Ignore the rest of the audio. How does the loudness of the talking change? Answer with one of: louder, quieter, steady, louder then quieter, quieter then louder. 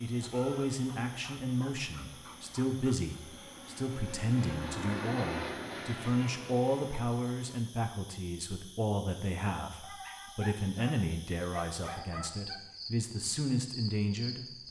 steady.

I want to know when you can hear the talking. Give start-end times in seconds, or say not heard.
0.0-14.6.